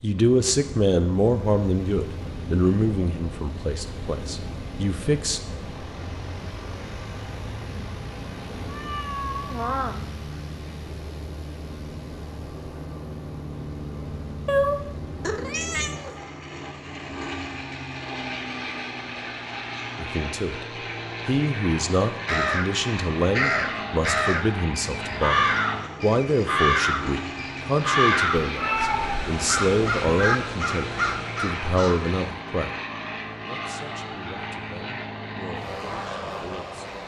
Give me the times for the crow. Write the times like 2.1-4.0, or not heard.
22.2-32.2.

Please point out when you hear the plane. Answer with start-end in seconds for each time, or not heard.
0.0-37.0.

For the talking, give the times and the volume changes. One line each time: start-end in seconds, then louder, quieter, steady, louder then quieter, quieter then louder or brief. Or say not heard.
0.0-5.4 quieter
19.9-20.6 brief
21.2-37.0 quieter.